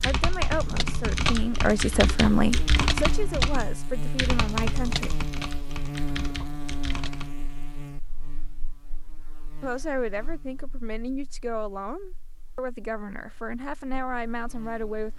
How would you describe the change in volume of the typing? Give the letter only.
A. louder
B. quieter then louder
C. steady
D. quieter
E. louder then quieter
D.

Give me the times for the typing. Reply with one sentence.
The typing can be heard from 0.0 to 7.3 s.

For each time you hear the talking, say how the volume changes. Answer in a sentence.
The talking can be heard from 0.0 to 5.2 s, getting louder then quieter; and from 9.6 to 15.1 s, at a steady volume.